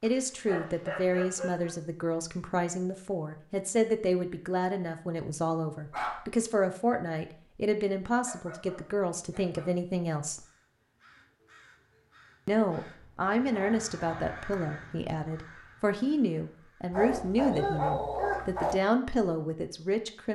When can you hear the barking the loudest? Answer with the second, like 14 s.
18 s.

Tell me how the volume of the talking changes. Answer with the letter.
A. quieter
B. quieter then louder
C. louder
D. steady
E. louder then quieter
D.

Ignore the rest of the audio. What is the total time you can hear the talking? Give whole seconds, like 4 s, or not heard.
18 s.